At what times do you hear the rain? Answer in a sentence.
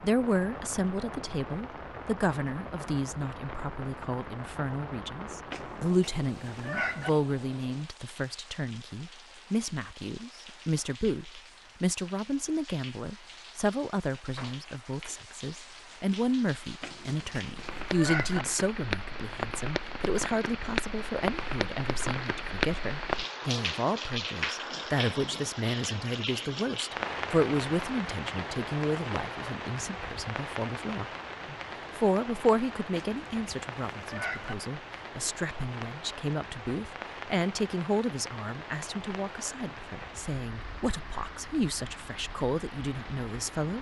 The rain can be heard from 0.0 to 43.7 s.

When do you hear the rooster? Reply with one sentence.
The rooster can be heard from 5.5 to 7.1 s, from 16.8 to 18.4 s and from 33.0 to 34.5 s.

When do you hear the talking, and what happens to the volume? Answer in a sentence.
The talking can be heard from 0.0 to 43.7 s, at a steady volume.